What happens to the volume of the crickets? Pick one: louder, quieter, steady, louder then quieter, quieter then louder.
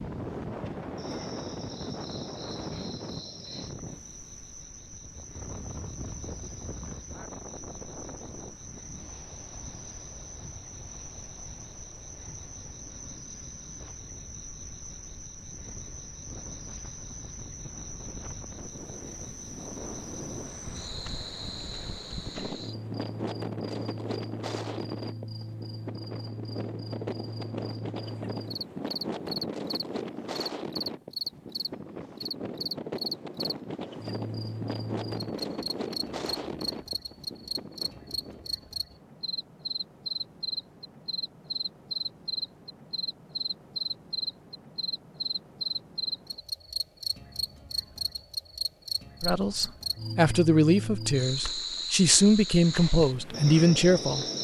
louder.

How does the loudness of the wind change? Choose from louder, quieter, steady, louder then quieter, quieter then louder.
quieter then louder.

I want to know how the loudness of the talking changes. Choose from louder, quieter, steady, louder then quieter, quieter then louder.
steady.